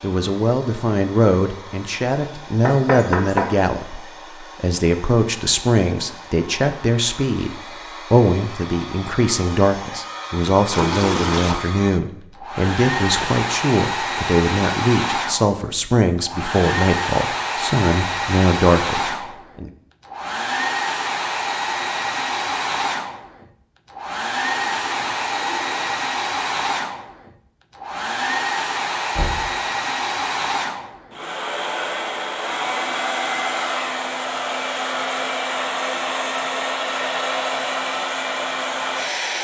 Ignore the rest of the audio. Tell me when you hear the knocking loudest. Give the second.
3 s.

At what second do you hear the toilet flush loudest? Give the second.
11 s.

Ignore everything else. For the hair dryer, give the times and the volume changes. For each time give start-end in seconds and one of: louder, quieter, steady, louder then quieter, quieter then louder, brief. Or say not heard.
0.0-39.3 louder.